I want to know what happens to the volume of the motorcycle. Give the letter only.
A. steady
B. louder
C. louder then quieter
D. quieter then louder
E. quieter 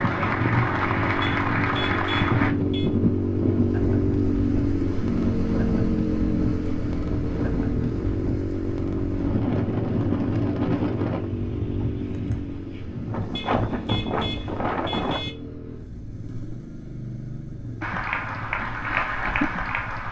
E.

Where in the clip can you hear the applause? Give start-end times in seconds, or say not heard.
0.0-2.5, 17.8-20.0.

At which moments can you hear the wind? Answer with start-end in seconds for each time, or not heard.
0.0-15.3.